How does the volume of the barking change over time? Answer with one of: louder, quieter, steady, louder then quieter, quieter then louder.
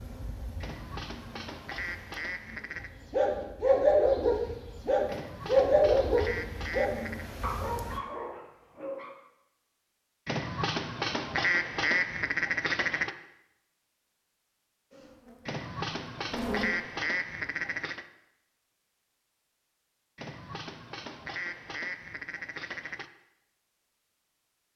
quieter.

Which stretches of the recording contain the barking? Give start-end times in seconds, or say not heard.
3.1-9.1.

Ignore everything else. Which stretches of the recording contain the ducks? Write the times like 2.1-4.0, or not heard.
0.6-2.9, 5.0-7.3, 10.2-13.2, 15.4-18.1, 20.1-23.1.